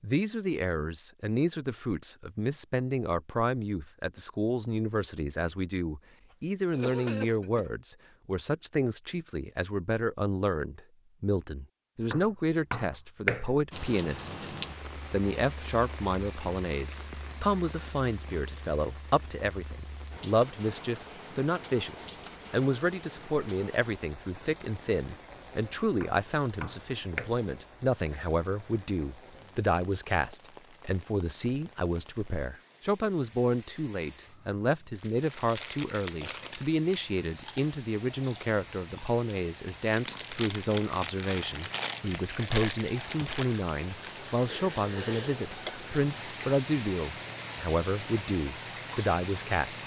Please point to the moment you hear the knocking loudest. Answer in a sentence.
The volume of the knocking peaks at 13 seconds.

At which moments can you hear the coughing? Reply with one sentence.
The coughing can be heard from 6.7 to 7.8 s, from 28.1 to 28.8 s and from 44.5 to 45.7 s.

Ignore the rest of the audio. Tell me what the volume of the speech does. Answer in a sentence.
The volume of the speech stays about the same.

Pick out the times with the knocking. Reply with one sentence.
You can hear the knocking from 12.1 to 13.7 s and from 26.0 to 27.3 s.